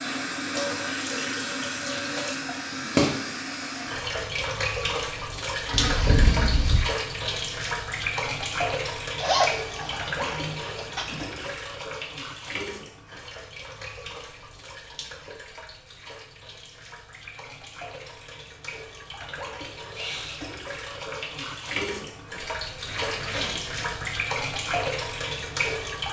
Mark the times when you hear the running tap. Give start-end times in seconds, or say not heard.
0.0-26.0.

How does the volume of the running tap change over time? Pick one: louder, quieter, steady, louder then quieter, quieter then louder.
quieter then louder.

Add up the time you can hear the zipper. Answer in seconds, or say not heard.
4 s.